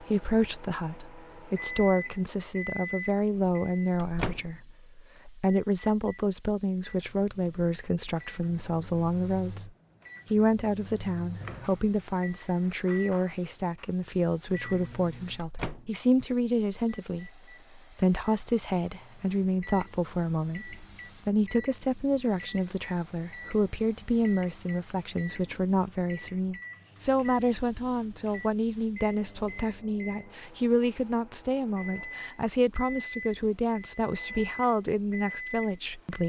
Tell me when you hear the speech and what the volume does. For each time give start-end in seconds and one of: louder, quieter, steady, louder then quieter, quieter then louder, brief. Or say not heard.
0.0-9.7 steady
10.3-36.2 steady.